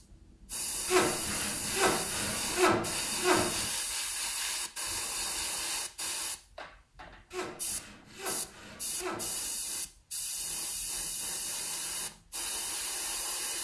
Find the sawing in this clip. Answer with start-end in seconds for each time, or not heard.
0.8-3.7, 7.3-9.6.